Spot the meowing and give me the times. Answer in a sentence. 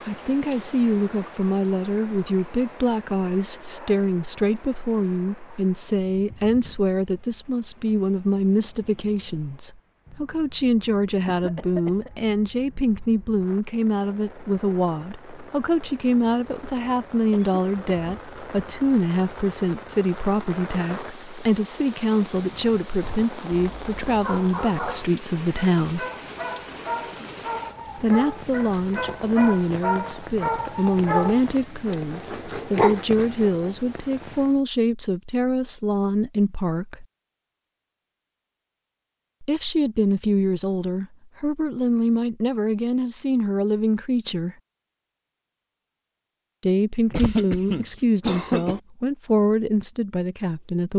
The meowing can't be heard in this clip.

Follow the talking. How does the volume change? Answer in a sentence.
The volume of the talking stays about the same.